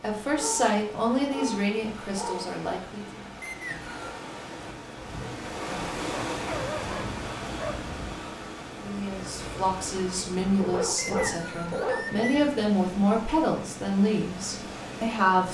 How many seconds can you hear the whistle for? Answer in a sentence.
You can hear the whistle for 2 seconds altogether.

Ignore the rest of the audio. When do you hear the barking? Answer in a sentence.
The barking can be heard from 0.3 to 2.5 s, from 6.3 to 7.8 s and from 10.6 to 12.2 s.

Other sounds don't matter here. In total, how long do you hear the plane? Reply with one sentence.
You can't hear the plane here.